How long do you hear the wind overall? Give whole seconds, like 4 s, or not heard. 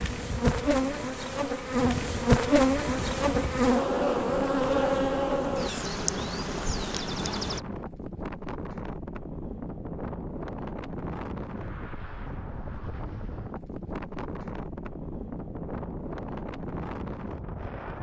18 s.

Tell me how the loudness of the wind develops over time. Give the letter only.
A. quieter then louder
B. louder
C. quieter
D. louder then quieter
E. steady
E.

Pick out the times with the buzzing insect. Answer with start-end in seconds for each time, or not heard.
0.0-7.6.